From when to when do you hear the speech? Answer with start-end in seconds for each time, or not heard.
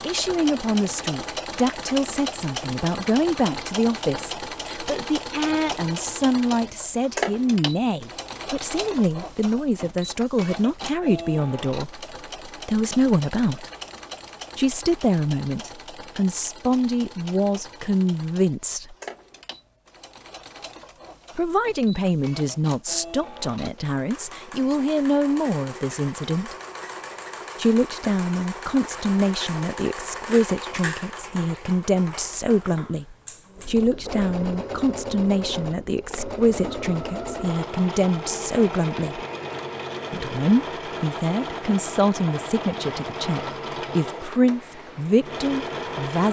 0.0-13.7, 14.6-18.9, 21.4-26.6, 27.6-39.2, 40.1-46.2.